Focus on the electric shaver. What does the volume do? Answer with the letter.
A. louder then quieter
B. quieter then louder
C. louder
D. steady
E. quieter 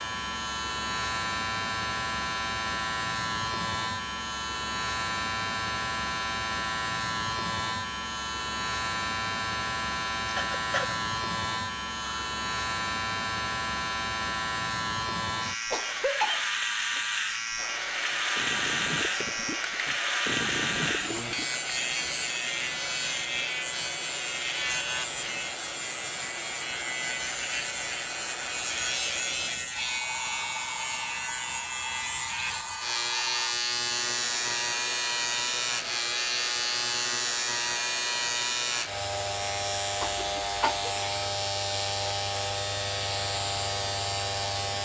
D.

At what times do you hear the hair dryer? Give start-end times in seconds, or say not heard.
17.6-44.7.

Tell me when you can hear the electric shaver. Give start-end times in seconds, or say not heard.
0.0-44.7.